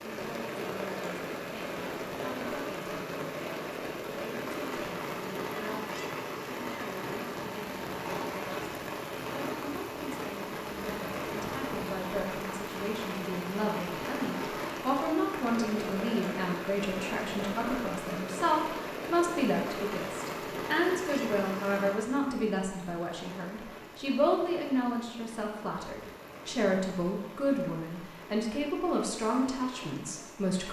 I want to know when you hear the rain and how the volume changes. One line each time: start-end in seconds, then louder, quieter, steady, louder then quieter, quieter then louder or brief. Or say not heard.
0.0-30.6 quieter.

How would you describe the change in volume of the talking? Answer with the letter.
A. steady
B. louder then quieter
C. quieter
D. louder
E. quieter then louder
D.